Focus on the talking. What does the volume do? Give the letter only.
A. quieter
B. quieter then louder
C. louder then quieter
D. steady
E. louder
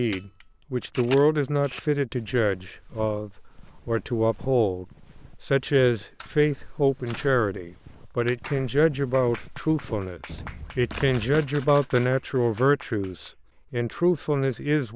D.